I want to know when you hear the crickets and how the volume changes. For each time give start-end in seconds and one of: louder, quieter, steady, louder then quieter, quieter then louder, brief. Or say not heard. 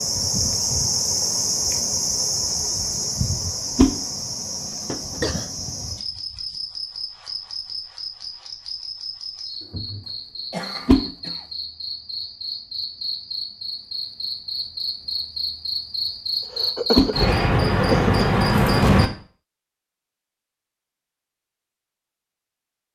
0.0-19.1 quieter then louder.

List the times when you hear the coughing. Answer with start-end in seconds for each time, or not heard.
4.7-5.5, 9.6-11.4, 16.4-18.3.